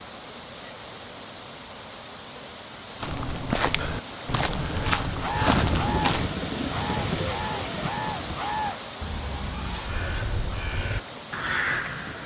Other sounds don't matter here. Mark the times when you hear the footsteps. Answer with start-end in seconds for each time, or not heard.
3.0-6.3.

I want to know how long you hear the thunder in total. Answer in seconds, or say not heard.
4 s.